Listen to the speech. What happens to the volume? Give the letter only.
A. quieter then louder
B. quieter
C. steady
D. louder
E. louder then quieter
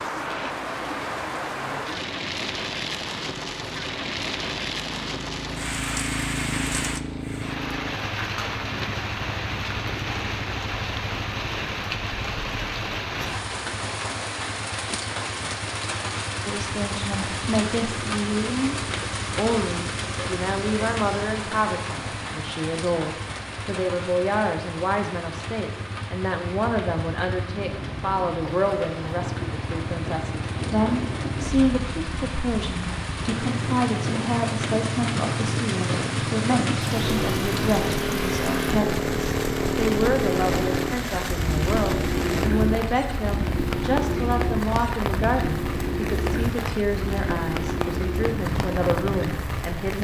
C.